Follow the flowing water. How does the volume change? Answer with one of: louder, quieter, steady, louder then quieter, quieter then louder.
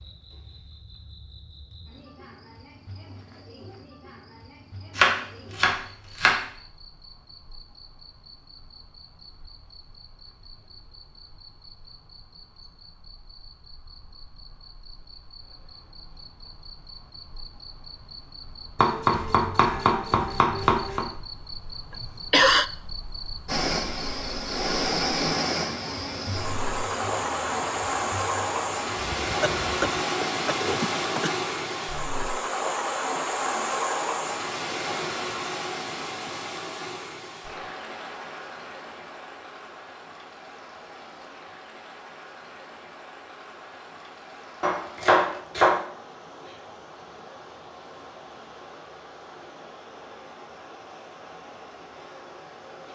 quieter.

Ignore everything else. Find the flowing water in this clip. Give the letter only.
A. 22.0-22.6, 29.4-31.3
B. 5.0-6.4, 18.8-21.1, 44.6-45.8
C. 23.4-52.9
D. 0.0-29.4
C.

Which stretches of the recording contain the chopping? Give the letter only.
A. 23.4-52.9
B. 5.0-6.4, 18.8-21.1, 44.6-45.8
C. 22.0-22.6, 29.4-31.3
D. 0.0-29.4
B.